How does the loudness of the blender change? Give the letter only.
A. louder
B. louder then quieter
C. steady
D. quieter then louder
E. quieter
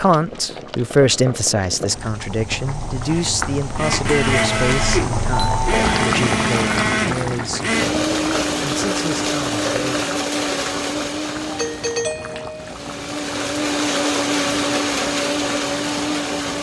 D.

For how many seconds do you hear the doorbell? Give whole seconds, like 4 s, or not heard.
2 s.